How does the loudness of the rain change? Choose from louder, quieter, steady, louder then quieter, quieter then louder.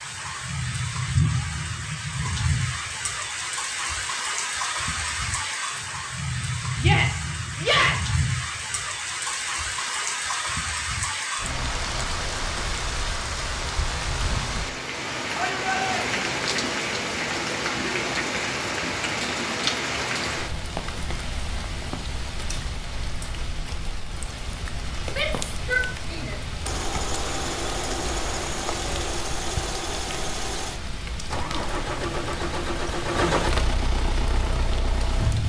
quieter.